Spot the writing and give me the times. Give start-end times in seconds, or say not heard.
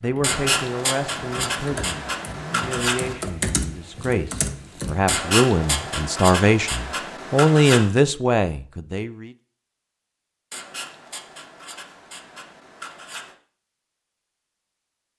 0.2-3.2, 5.0-7.9, 10.5-13.3.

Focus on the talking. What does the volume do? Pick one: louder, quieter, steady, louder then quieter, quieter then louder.
louder.